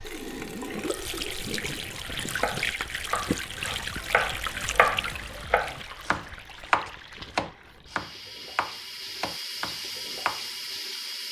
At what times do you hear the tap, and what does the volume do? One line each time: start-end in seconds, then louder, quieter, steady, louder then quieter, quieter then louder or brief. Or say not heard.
0.0-11.2 quieter then louder.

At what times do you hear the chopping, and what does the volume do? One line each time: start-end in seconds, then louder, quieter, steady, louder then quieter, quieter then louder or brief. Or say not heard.
2.2-10.5 louder then quieter.